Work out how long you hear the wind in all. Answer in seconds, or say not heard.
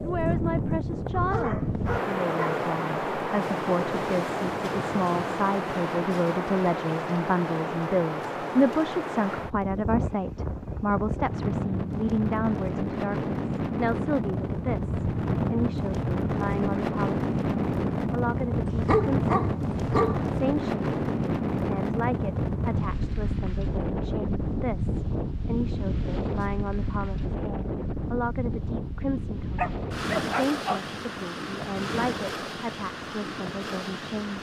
34 s.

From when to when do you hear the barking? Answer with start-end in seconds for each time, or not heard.
1.1-2.7, 18.6-20.2, 29.6-30.9.